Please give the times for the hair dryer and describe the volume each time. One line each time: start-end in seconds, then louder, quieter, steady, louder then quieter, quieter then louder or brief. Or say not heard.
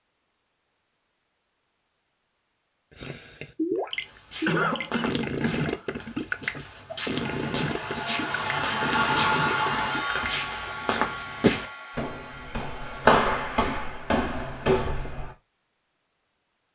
7.1-13.7 louder then quieter.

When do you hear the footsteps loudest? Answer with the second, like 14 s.
13 s.